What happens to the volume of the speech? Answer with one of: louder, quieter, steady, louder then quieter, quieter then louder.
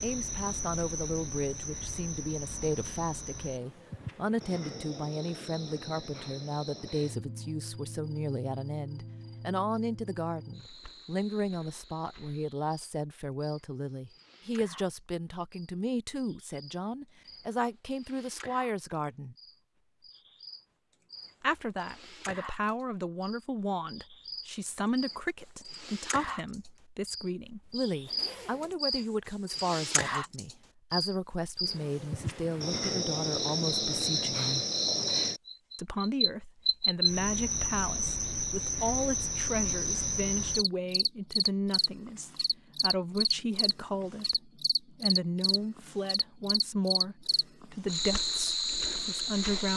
steady.